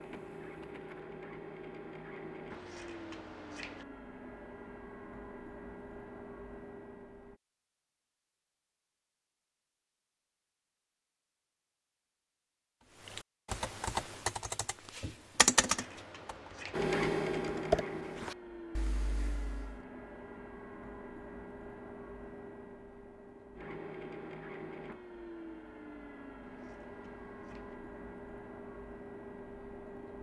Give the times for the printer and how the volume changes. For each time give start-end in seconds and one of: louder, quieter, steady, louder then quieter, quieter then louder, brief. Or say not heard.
0.0-7.4 steady
16.7-30.1 quieter.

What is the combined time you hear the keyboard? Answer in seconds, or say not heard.
7 s.